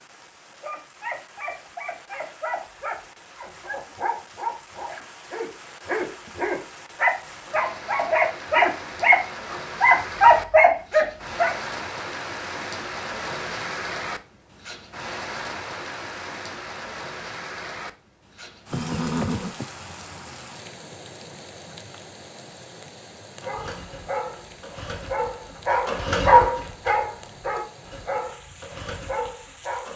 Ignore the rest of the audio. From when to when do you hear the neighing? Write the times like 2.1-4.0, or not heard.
18.7-19.6.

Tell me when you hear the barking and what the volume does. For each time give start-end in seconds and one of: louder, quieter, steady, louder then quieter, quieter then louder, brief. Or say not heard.
0.6-11.6 louder
23.4-29.9 louder then quieter.